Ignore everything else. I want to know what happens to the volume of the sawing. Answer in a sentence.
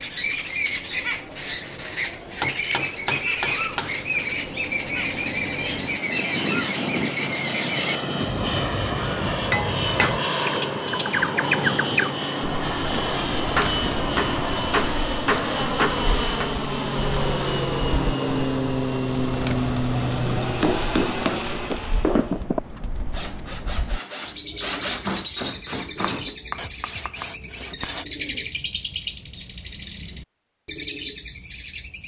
The loudness of the sawing goes up, then down.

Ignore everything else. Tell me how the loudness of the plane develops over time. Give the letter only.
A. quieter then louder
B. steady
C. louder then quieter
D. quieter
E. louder
E.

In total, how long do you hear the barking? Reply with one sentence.
The barking can't be heard in this clip.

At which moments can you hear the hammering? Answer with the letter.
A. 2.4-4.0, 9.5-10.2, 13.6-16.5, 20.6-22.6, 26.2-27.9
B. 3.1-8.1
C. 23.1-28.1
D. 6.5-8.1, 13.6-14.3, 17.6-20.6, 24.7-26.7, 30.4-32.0
A.